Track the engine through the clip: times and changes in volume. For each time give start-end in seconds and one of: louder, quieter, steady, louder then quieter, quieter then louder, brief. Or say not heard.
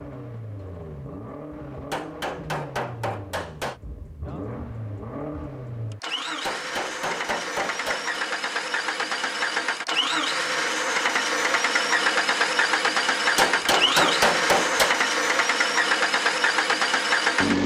0.0-17.6 louder.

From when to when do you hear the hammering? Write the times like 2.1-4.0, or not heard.
1.9-3.8, 6.4-8.2, 13.3-14.9.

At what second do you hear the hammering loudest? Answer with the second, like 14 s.
14 s.